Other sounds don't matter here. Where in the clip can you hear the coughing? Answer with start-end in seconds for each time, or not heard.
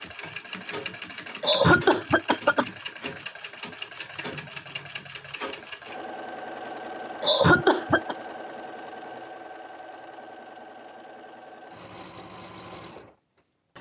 1.4-2.6, 7.2-8.2.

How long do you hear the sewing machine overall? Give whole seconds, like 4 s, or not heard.
14 s.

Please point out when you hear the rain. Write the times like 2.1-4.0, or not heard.
not heard.